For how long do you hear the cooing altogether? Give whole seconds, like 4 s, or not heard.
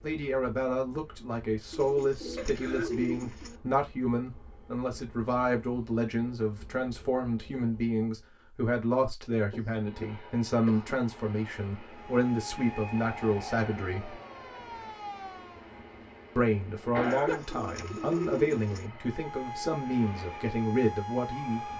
4 s.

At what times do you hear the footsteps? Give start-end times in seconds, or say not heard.
not heard.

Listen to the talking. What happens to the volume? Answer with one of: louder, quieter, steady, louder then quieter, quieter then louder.
steady.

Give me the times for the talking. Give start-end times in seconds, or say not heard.
0.0-14.2, 16.4-21.7.